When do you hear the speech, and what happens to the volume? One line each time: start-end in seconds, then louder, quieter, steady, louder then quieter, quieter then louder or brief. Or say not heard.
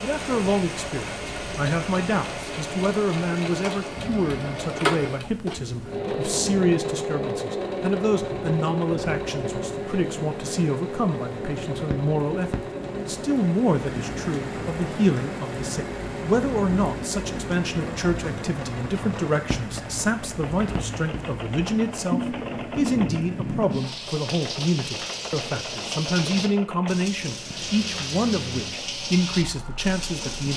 0.0-30.5 steady.